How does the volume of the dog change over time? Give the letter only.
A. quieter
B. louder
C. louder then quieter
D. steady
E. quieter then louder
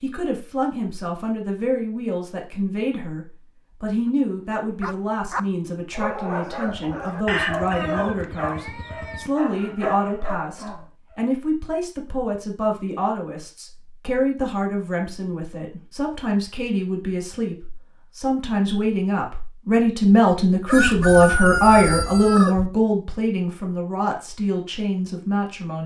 E.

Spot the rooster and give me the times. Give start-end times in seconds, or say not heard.
7.2-9.3, 20.6-22.7.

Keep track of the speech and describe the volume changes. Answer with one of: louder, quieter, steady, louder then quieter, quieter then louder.
louder.